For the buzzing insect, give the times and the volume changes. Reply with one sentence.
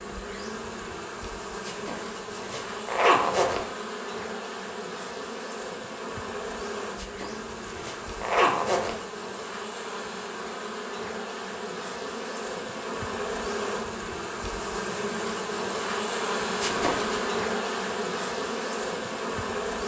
You can hear the buzzing insect from 0.0 to 19.8 s, getting louder.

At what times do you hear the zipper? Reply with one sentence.
You can hear the zipper from 1.6 to 3.6 s, from 7.0 to 8.9 s and from 16.6 to 17.2 s.